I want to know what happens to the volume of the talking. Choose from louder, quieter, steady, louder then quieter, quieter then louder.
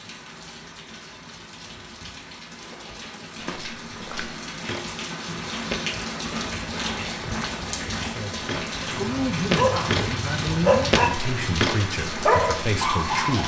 steady.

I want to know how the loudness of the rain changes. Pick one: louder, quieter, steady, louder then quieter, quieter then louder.
louder.